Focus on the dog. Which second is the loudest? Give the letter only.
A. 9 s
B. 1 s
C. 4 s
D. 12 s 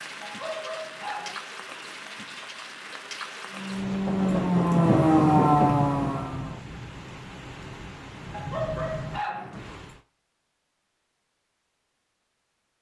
A.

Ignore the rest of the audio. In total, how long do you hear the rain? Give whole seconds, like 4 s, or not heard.
10 s.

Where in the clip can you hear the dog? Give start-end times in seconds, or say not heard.
0.2-1.4, 8.3-9.5.